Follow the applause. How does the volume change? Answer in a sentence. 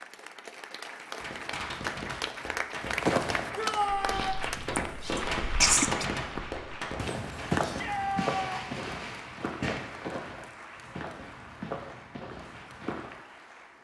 The volume of the applause goes down.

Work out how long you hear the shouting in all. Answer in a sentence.
The shouting can be heard for 2 seconds in total.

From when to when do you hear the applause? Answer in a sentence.
You can hear the applause from 0.0 to 13.7 s.